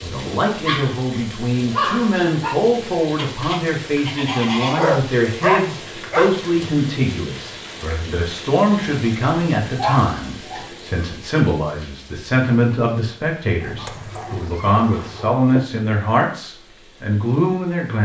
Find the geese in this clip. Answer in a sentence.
The geese can be heard from 3.1 to 4.8 s and from 13.7 to 15.2 s.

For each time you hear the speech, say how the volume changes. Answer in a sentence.
You can hear the speech from 0.0 to 18.0 s, at a steady volume.